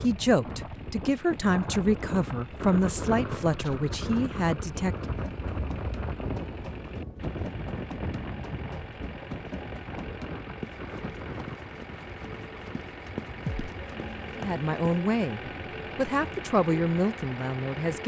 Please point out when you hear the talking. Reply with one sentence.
The talking can be heard from 0.0 to 5.1 s and from 14.3 to 18.0 s.